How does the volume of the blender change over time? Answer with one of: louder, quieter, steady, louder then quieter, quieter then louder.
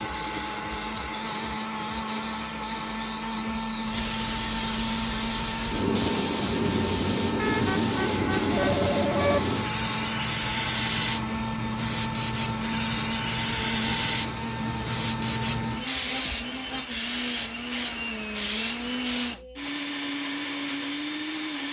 steady.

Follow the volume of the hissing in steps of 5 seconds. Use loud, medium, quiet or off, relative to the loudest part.
medium, loud, loud, loud, off.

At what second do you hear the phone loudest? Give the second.
9 s.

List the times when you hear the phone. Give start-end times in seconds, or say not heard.
7.3-9.4.